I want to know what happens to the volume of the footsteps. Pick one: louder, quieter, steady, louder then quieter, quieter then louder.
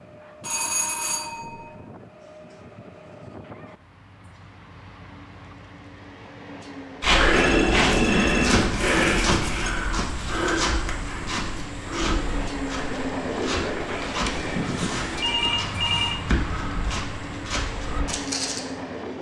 quieter.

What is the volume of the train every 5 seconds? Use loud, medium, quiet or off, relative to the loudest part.
quiet, medium, loud, loud.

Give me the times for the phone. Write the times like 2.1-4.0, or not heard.
0.4-1.7, 7.3-9.8, 13.8-16.2.